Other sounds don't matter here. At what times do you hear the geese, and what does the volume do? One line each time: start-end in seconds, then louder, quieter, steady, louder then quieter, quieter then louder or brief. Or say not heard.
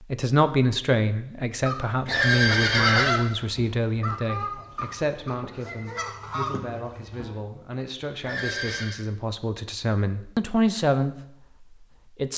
1.6-7.3 quieter then louder.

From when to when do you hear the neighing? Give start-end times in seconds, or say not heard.
2.0-3.1, 8.2-8.9.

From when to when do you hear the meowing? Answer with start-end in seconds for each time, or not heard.
not heard.